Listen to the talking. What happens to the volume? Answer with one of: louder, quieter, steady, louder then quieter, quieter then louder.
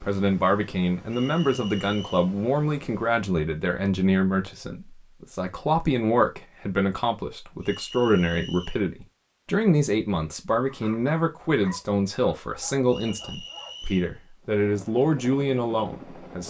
steady.